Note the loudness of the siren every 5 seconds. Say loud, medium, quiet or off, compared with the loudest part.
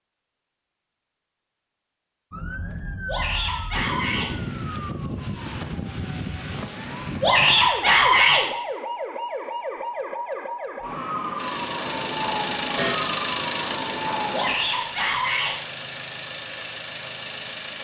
loud, loud, loud, off.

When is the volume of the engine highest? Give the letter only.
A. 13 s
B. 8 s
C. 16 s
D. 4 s
A.